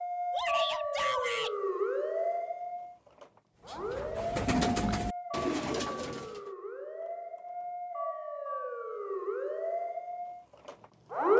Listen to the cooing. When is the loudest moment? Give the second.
5 s.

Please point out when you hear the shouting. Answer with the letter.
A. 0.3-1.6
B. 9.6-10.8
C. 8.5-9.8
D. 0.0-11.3
A.